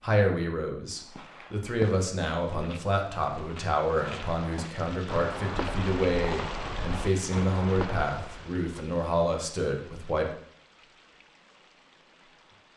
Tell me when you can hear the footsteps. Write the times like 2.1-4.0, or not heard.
1.1-8.5.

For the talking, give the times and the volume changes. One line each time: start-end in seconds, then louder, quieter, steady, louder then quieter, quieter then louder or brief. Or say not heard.
0.0-10.3 steady.